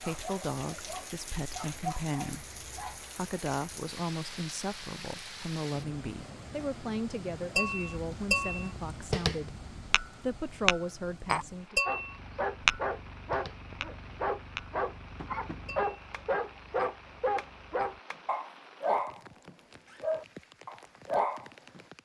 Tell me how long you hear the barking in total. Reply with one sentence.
You can hear the barking for 13 seconds altogether.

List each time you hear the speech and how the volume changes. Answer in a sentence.
The speech can be heard from 0.0 to 11.8 s, at a steady volume.